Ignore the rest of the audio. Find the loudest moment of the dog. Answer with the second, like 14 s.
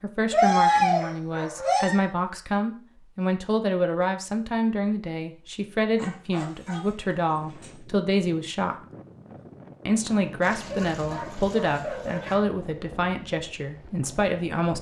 1 s.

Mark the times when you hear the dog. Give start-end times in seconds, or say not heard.
0.3-1.9, 6.0-7.7, 10.4-12.3.